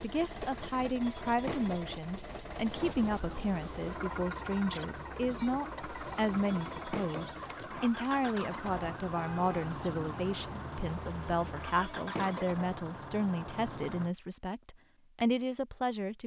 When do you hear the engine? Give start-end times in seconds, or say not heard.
0.0-14.2.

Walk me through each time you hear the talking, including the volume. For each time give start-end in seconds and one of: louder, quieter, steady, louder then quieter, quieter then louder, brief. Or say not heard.
0.0-16.2 steady.